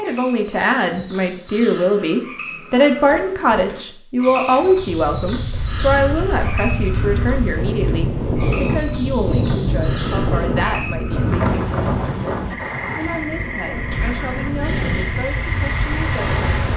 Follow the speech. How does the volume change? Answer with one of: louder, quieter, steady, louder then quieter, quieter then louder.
quieter.